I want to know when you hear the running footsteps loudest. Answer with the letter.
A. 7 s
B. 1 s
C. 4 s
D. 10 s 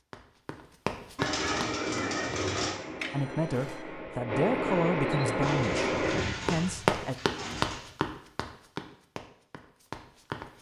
A.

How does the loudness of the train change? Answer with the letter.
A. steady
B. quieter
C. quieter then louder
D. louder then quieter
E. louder
E.